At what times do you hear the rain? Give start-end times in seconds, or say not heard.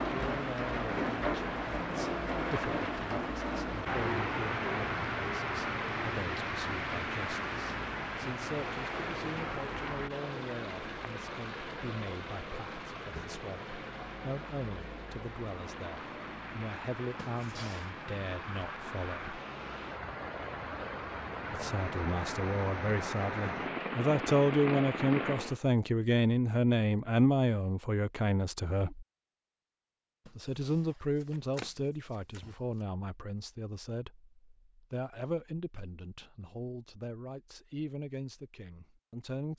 0.0-25.6.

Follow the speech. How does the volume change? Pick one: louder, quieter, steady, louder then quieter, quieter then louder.
louder then quieter.